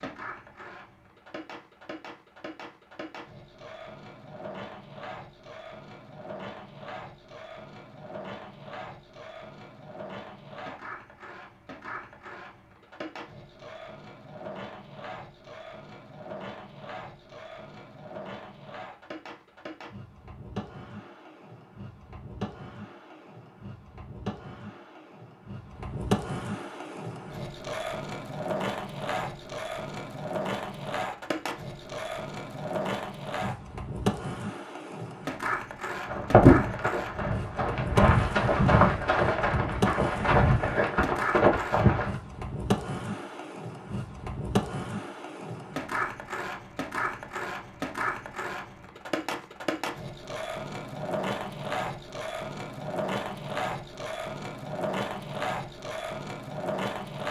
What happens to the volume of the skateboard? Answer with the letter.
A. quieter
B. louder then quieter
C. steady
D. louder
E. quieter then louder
D.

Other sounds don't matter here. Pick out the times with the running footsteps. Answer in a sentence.
The running footsteps can be heard from 36.0 to 42.1 s.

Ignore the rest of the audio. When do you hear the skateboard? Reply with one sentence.
You can hear the skateboard from 0.0 to 57.2 s.